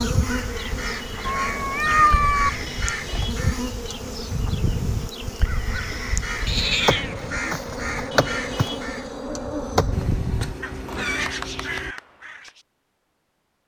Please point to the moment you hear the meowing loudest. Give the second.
2 s.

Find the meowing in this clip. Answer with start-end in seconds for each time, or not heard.
1.2-2.5, 6.5-7.3, 9.9-11.9.